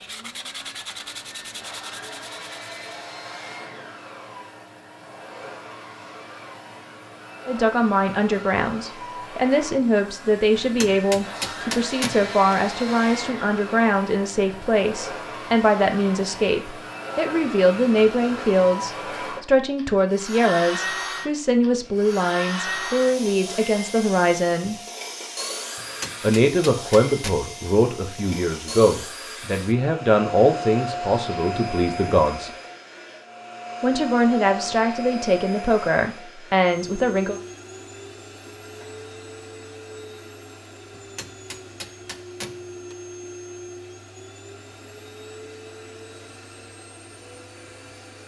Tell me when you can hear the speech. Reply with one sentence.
You can hear the speech from 7.5 to 24.8 s, from 26.2 to 32.5 s and from 33.8 to 37.4 s.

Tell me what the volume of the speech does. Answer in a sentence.
The volume of the speech stays about the same.